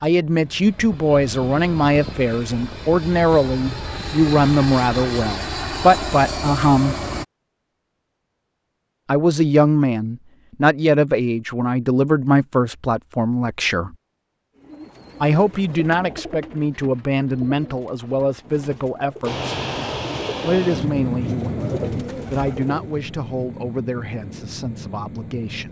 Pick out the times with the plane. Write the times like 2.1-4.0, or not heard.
0.2-7.2, 19.2-25.6.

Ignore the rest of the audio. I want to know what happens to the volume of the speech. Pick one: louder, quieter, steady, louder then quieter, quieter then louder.
quieter.